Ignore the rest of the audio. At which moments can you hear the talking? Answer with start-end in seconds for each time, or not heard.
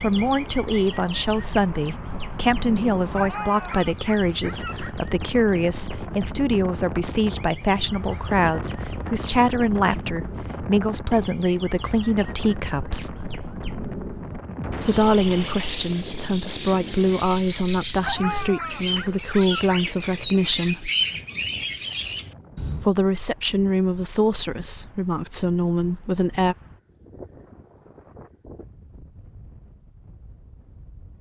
0.0-13.2, 14.8-20.9, 22.8-26.6.